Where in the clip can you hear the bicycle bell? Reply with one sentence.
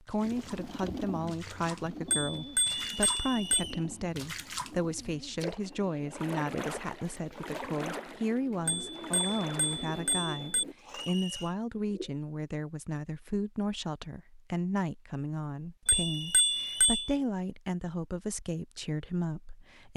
The bicycle bell can be heard from 2.1 to 3.6 s, from 8.7 to 10.7 s and from 15.8 to 17.1 s.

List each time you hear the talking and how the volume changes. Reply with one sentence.
The talking can be heard from 0.0 to 19.9 s, at a steady volume.